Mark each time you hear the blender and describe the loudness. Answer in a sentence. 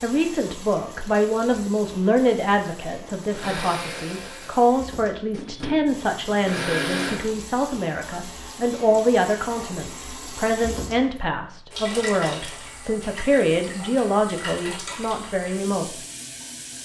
The blender can be heard from 3.2 to 7.4 s, getting quieter then louder.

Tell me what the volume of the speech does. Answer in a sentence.
The loudness of the speech stays about the same.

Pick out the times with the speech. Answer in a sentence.
The speech can be heard from 0.0 to 15.9 s.